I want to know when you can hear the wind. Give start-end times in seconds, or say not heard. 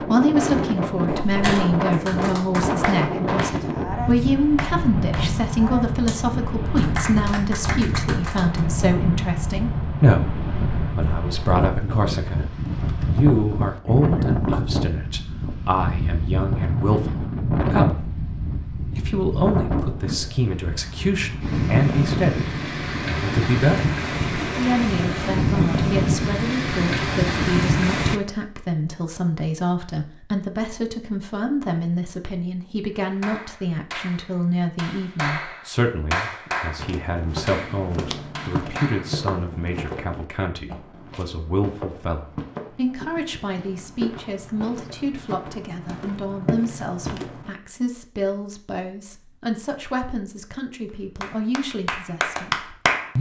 0.0-28.2.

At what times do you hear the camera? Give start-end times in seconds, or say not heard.
1.1-1.8.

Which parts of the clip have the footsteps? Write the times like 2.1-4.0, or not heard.
36.8-47.5.